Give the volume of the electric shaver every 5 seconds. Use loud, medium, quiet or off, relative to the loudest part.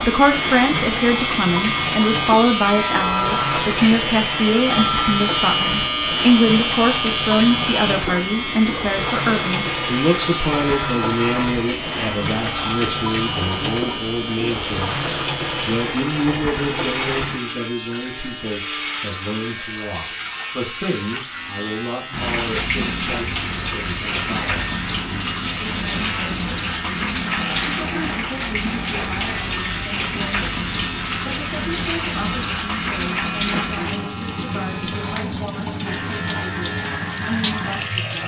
loud, loud, medium, medium, medium, medium, medium, medium.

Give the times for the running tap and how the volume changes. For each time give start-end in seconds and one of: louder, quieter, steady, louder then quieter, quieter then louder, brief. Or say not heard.
0.0-38.2 steady.